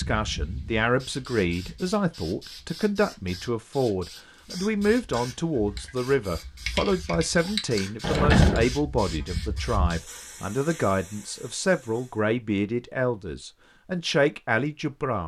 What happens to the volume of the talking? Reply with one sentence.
The volume of the talking stays about the same.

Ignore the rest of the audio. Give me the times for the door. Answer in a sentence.
You can hear the door from 8.0 to 8.7 s.